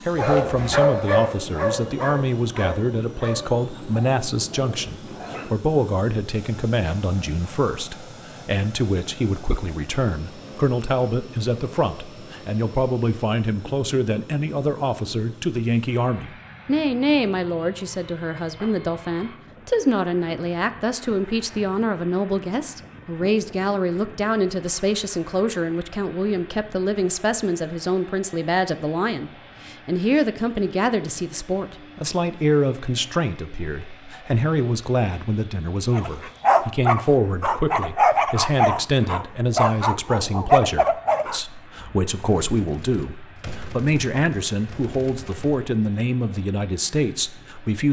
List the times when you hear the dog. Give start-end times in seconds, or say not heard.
0.1-5.6, 35.9-41.4.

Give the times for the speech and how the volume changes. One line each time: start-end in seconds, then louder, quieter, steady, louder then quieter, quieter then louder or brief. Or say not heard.
0.0-47.8 steady.